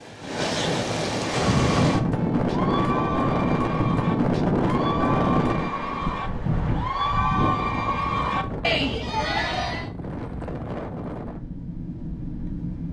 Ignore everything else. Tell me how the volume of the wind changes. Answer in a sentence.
The loudness of the wind goes down.